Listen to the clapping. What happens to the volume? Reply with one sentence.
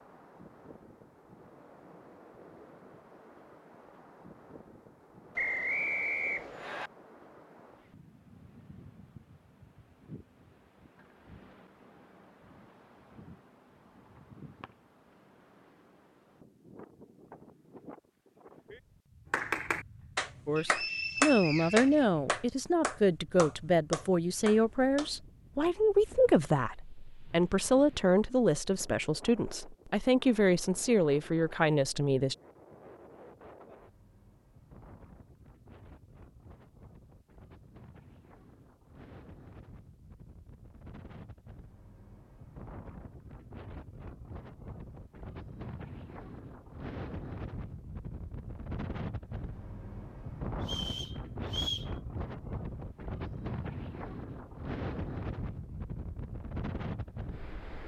The volume of the clapping goes up, then down.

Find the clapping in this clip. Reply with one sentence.
You can hear the clapping from 19.3 to 25.1 s.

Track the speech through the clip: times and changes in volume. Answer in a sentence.
You can hear the speech from 20.4 to 32.4 s, at a steady volume.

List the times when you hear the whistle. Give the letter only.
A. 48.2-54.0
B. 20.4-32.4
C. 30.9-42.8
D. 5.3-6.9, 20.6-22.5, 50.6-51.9
D.